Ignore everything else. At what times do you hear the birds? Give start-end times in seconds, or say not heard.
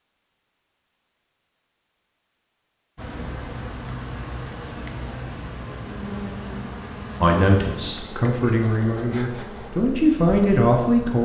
not heard.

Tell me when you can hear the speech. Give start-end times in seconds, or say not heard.
7.2-11.1.